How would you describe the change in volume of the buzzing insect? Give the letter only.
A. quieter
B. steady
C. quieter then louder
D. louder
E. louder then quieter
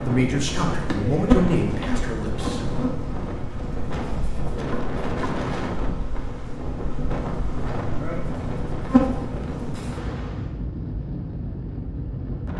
C.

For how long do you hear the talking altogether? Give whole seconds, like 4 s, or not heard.
3 s.